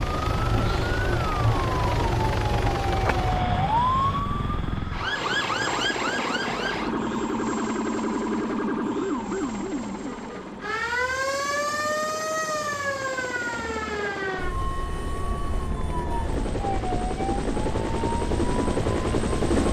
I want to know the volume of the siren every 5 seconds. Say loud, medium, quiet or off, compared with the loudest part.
loud, loud, loud, medium.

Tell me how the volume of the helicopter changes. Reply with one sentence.
The loudness of the helicopter goes down, then up.